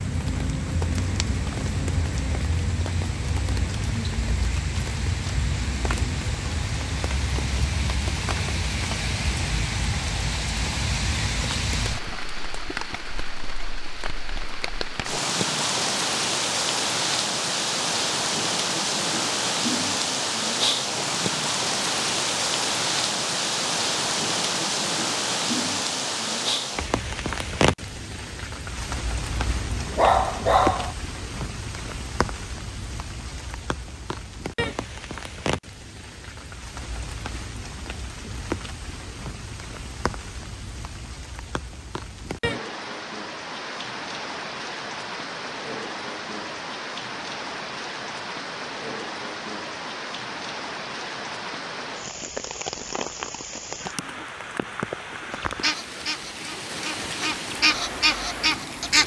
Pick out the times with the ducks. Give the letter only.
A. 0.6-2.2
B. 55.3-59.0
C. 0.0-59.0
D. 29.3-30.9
B.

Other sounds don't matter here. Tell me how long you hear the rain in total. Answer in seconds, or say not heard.
59 s.